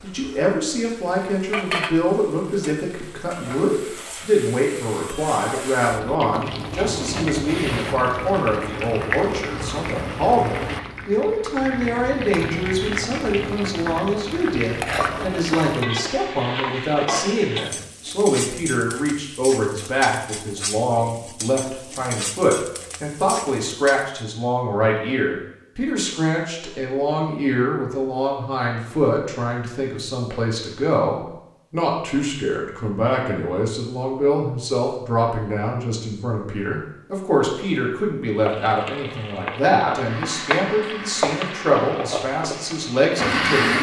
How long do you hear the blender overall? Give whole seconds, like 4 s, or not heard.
4 s.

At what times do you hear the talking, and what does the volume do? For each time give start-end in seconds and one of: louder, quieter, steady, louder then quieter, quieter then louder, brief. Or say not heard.
0.0-43.7 steady.